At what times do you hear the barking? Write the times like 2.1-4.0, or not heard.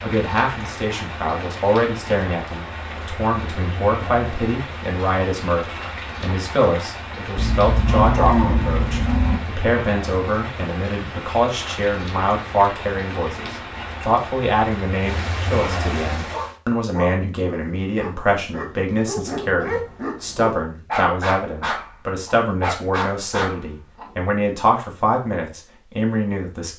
16.3-24.1.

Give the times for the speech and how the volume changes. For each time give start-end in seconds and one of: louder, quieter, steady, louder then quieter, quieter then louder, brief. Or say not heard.
0.0-26.7 steady.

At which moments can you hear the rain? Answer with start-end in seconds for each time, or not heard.
0.0-16.6.